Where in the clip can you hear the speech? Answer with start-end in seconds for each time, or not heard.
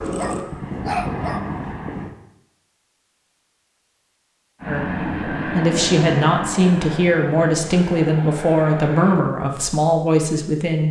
4.7-10.8.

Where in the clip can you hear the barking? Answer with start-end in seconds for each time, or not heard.
0.1-1.5.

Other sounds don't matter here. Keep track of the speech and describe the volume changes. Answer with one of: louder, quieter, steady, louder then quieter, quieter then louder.
steady.